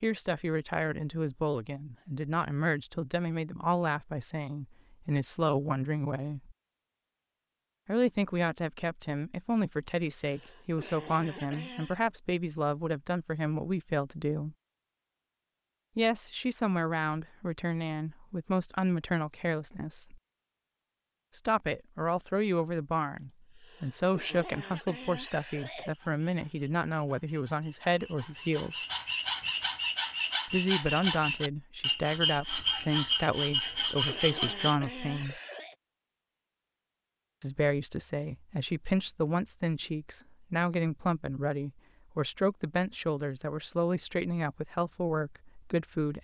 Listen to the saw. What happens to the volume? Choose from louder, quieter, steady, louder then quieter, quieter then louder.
louder.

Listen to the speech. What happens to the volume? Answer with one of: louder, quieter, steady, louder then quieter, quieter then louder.
steady.